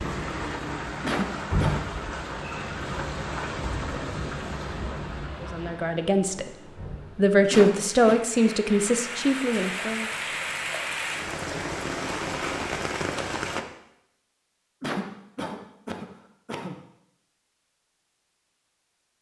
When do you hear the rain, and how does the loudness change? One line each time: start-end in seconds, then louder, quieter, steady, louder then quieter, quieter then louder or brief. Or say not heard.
0.0-13.7 quieter then louder.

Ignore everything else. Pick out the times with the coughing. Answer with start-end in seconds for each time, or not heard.
1.0-1.9, 7.5-8.2, 14.8-16.8.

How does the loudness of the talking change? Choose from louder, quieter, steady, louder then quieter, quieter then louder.
louder then quieter.